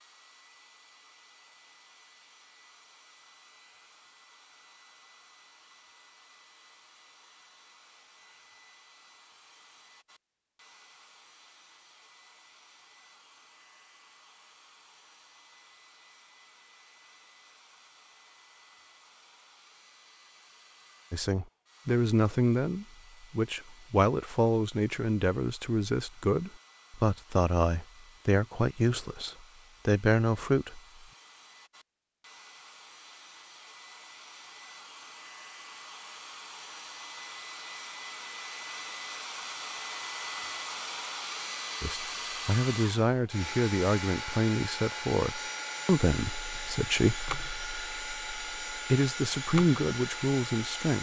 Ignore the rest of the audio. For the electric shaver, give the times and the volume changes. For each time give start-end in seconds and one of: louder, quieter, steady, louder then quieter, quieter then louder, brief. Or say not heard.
not heard.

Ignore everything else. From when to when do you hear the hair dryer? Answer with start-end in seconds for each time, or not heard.
0.0-50.9.